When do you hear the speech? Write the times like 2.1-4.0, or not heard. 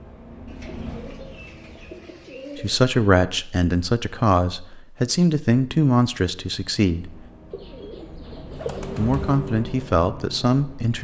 2.5-7.2, 8.9-10.9.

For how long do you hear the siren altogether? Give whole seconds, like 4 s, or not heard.
not heard.